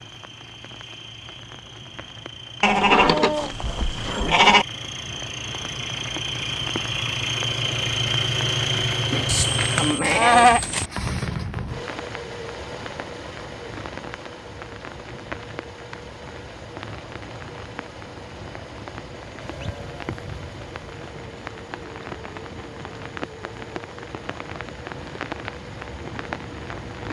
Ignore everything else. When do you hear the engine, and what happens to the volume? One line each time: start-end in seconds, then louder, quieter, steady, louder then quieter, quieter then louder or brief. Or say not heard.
0.0-27.0 louder then quieter.